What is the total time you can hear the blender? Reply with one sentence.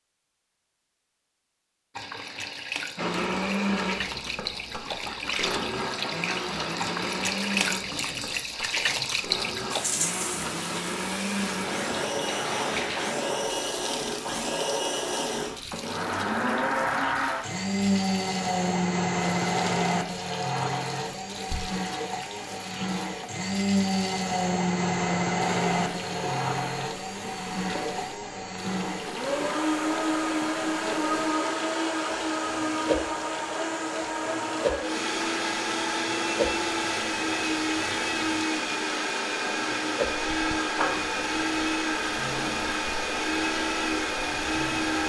The blender can be heard for 42 seconds in total.